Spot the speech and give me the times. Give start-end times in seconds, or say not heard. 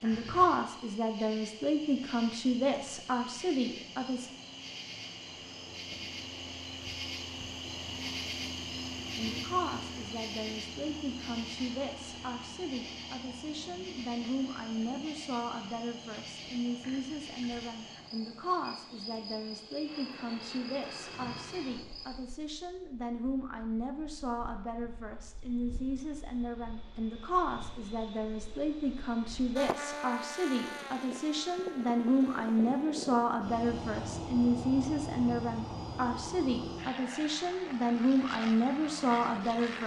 0.0-4.3, 9.2-39.8.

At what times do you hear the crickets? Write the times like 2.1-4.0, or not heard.
0.0-22.4.